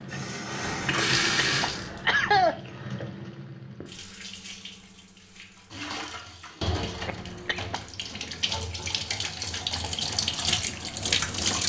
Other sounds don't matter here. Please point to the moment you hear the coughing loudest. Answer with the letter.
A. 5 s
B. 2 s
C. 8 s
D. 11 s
B.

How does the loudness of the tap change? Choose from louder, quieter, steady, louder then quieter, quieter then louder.
quieter then louder.